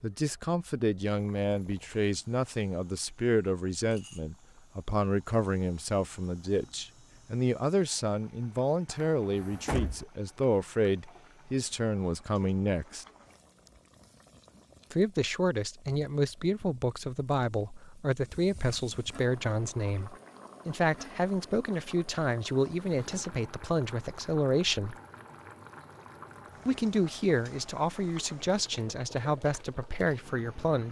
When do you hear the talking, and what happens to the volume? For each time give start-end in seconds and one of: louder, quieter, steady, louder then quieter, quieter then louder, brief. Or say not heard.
0.0-13.1 steady
14.9-24.9 steady
26.6-30.8 steady.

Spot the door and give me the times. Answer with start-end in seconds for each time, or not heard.
8.8-10.1, 22.8-23.4.